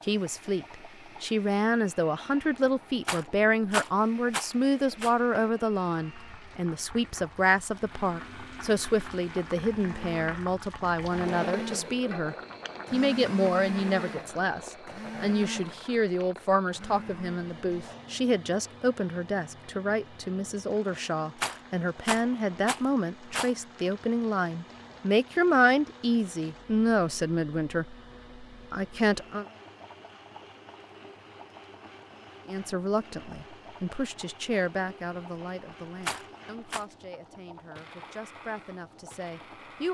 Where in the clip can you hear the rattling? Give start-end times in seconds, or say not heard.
3.0-5.1, 21.4-23.6, 36.0-36.9.